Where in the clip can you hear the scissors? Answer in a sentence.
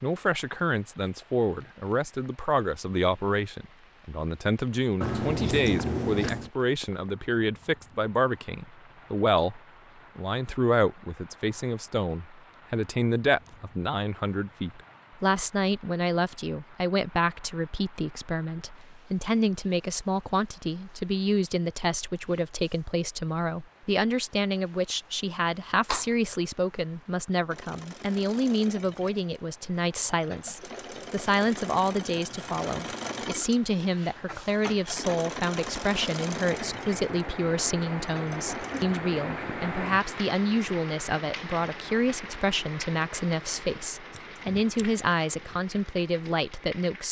The scissors can be heard from 5.0 to 6.5 s and from 44.1 to 45.0 s.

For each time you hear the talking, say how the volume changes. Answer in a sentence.
You can hear the talking from 0.0 to 47.0 s, at a steady volume.